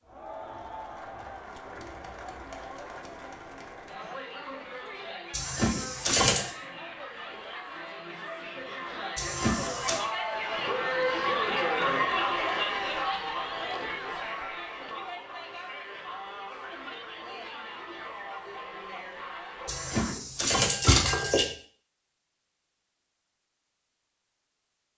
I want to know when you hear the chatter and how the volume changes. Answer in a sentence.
You can hear the chatter from 0.0 to 20.1 s, getting louder then quieter.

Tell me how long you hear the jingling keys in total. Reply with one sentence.
The jingling keys can be heard for 4 seconds in total.